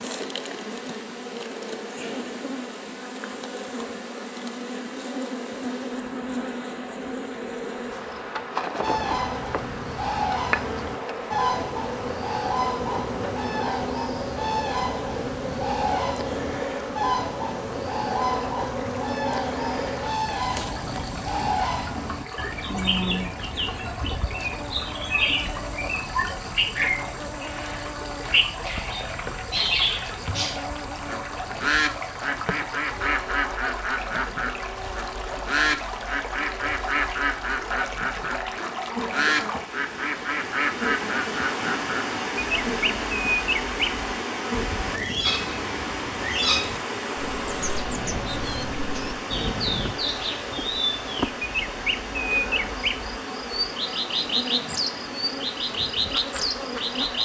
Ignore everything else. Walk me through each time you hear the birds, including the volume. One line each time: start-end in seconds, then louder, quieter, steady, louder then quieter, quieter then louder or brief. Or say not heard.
8.8-57.2 steady.